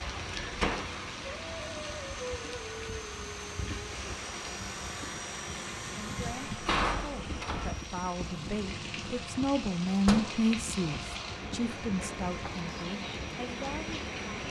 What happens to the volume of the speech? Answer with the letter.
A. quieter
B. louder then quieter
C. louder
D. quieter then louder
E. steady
B.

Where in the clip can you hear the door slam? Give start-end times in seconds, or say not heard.
0.4-1.1, 6.5-7.8, 10.1-10.5.